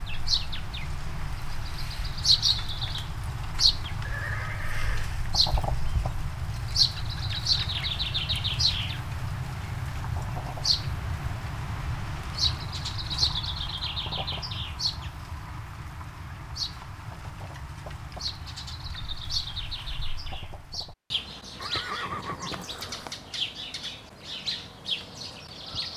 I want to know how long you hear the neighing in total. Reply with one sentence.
The neighing can be heard for 3 seconds in total.